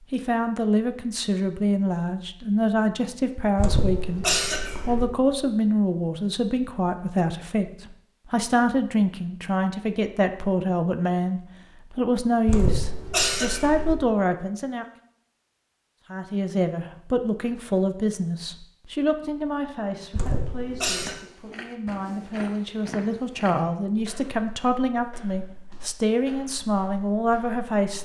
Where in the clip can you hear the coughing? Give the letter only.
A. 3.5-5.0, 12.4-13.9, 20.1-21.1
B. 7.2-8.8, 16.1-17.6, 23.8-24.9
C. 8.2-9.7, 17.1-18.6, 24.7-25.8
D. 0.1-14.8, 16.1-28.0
A.